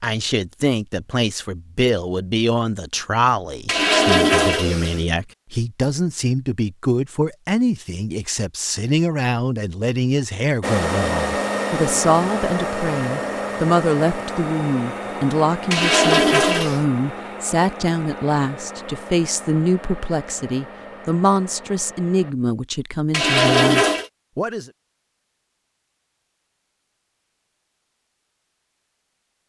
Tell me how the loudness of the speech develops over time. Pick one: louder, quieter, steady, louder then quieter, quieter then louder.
steady.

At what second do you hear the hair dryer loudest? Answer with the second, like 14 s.
11 s.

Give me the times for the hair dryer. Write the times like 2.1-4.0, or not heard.
10.6-22.4.